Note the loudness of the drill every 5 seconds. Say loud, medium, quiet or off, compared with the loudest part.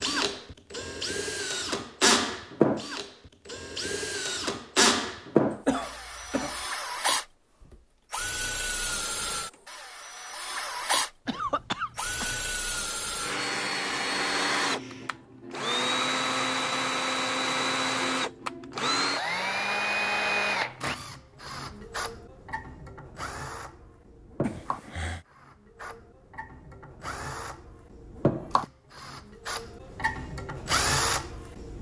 loud, loud, loud, loud, medium, medium, loud.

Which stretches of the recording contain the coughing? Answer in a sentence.
The coughing can be heard from 5.7 to 6.7 s, from 11.2 to 12.5 s and from 24.4 to 25.2 s.